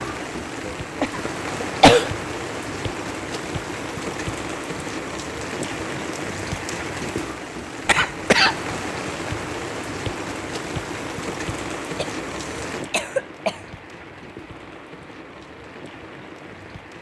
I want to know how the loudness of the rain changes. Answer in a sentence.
The volume of the rain goes down.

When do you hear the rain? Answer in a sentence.
The rain can be heard from 0.0 to 16.9 s.